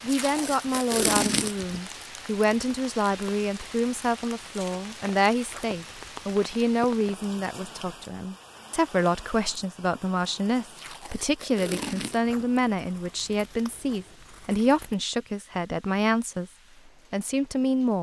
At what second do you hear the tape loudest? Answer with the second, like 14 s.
1 s.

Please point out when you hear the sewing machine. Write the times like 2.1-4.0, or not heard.
not heard.